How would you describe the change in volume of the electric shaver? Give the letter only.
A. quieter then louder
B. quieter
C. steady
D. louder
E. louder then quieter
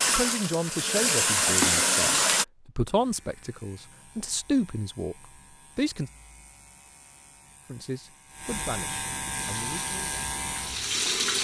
D.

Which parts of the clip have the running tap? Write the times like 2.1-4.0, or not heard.
0.0-2.5, 9.3-11.3.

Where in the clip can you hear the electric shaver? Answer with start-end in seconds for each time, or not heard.
2.9-11.1.